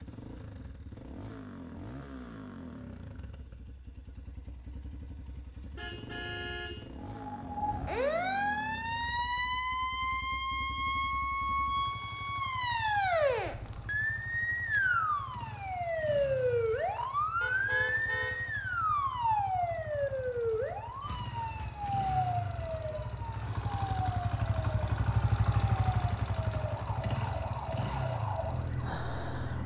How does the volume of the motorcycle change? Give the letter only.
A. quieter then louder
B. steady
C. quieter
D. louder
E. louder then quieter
D.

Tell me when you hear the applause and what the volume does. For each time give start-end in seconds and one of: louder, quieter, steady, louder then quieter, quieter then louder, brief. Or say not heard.
not heard.